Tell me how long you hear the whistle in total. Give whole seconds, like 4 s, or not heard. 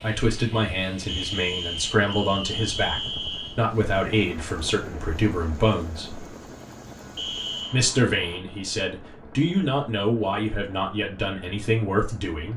3 s.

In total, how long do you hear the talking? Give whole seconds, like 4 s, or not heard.
11 s.